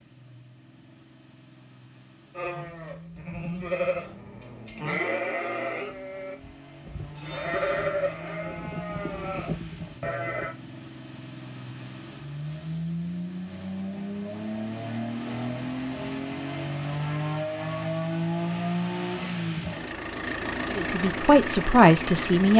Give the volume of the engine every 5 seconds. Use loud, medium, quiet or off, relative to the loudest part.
quiet, quiet, medium, loud, loud.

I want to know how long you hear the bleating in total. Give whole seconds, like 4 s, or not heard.
8 s.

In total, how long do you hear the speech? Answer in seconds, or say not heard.
2 s.